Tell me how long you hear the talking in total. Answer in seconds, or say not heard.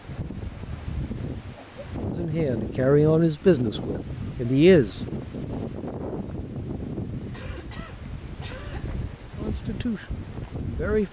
5 s.